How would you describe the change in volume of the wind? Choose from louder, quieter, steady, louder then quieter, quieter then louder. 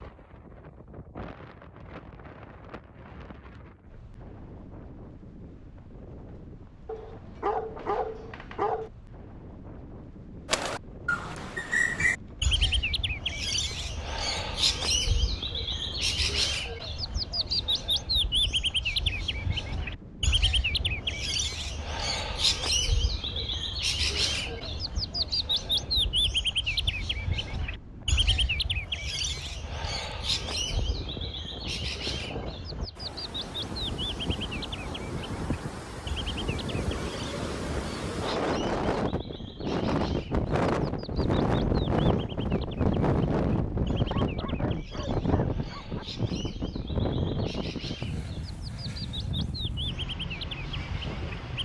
louder.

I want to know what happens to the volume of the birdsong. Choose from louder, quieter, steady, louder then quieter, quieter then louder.
quieter.